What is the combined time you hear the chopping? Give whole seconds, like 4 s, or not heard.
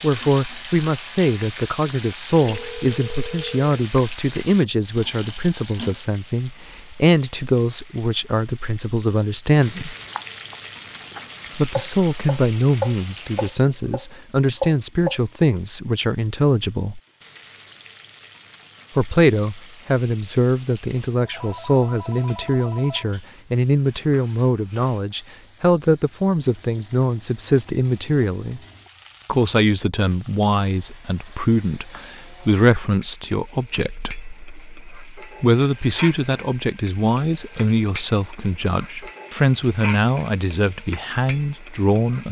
5 s.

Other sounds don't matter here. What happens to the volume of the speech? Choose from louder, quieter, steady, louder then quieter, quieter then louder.
steady.